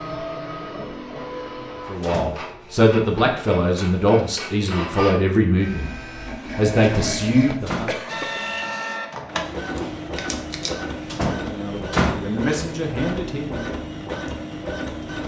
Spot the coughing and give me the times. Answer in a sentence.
The coughing can be heard from 7.4 to 8.4 s.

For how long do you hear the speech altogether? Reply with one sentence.
The speech can be heard for 8 seconds in total.